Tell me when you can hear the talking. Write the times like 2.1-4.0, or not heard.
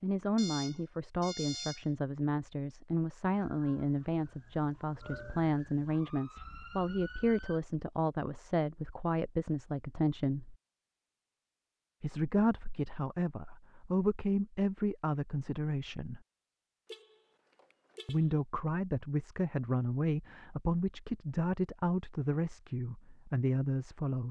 0.0-10.6, 12.0-16.2, 18.1-24.2.